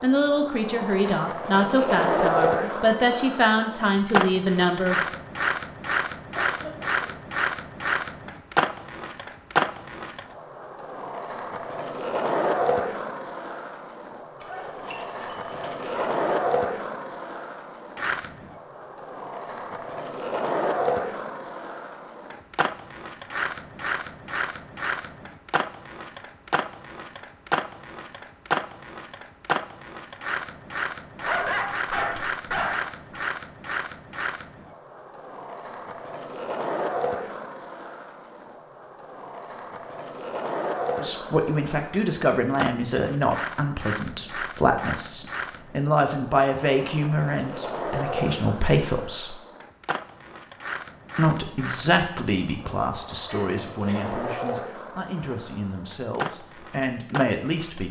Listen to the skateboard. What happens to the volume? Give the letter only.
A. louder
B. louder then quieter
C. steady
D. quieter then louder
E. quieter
E.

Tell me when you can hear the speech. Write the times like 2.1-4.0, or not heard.
0.0-5.0, 41.0-49.4, 51.1-57.8.